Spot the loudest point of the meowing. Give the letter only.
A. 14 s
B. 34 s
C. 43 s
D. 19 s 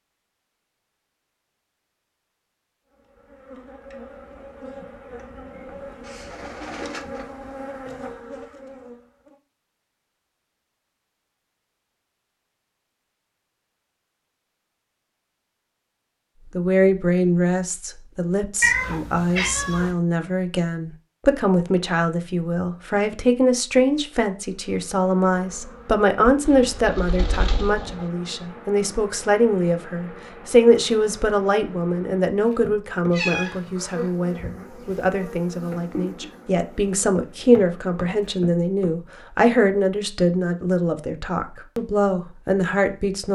D.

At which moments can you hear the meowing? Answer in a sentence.
You can hear the meowing from 18.6 to 19.9 s and from 33.1 to 34.1 s.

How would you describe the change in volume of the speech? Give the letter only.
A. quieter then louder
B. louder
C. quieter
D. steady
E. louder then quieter
D.